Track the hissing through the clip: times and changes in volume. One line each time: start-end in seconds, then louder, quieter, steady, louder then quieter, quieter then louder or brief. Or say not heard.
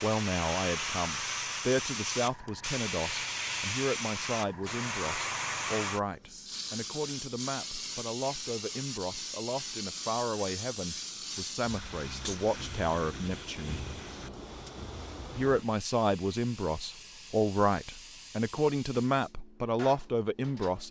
0.0-20.8 quieter.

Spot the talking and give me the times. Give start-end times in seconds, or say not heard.
0.0-13.8, 15.3-20.8.